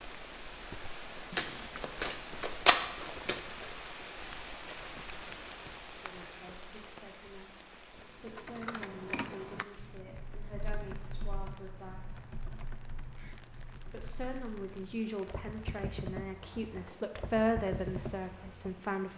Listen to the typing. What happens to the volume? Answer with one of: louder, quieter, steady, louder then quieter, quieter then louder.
quieter then louder.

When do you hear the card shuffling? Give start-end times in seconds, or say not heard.
1.3-3.8.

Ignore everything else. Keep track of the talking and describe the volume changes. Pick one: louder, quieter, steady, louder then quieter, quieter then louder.
louder.